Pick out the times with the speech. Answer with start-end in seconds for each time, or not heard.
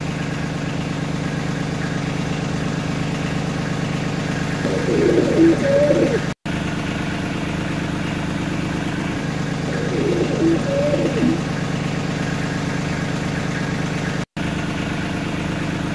not heard.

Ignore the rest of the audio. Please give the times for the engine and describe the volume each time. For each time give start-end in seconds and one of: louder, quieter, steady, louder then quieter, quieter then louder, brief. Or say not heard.
0.0-15.9 steady.